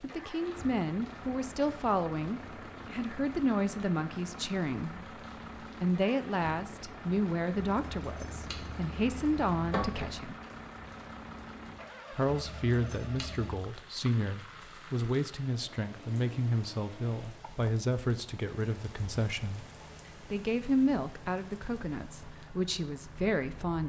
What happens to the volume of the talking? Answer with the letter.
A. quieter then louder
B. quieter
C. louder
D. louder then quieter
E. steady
E.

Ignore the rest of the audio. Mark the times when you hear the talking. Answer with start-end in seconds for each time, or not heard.
0.0-10.4, 12.1-23.8.